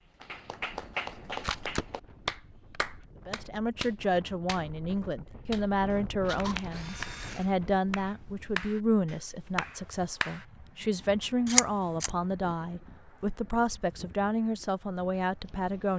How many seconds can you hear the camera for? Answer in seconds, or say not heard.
4 s.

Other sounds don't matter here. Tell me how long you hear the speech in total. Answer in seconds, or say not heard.
13 s.